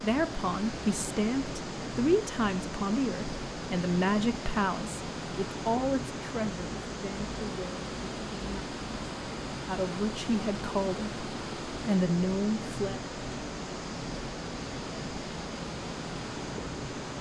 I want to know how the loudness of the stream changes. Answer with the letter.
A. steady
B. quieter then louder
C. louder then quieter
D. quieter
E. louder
A.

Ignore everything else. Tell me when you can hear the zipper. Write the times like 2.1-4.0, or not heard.
not heard.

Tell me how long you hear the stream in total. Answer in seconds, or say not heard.
17 s.